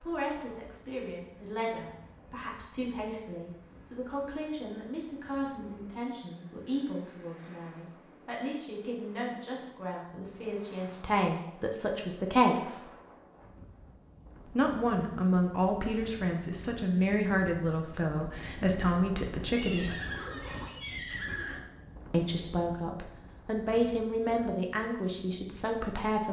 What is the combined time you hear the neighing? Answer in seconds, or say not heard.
2 s.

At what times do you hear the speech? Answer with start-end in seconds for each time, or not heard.
0.0-12.8, 14.4-19.9, 22.1-26.2.